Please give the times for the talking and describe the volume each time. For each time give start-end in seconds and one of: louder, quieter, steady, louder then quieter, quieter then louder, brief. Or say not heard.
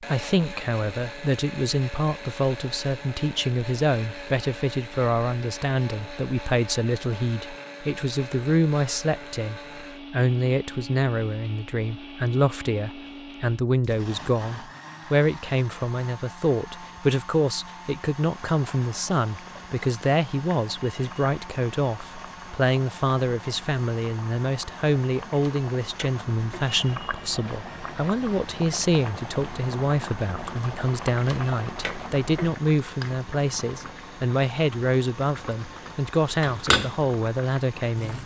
0.1-38.2 steady.